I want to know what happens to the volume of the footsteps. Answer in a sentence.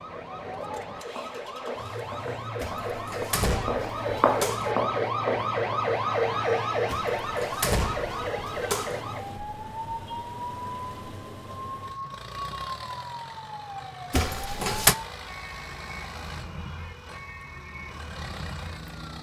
The loudness of the footsteps goes up.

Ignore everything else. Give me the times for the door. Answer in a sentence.
The door can be heard from 2.6 to 4.7 s, from 6.9 to 9.0 s and from 14.1 to 14.9 s.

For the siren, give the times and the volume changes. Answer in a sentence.
The siren can be heard from 0.0 to 19.1 s, getting louder then quieter.